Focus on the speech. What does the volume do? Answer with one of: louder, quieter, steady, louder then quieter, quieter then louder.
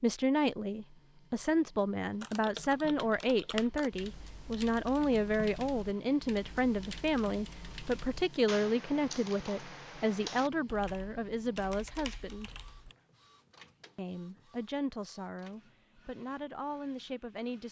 quieter.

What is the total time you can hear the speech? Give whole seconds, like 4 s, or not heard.
16 s.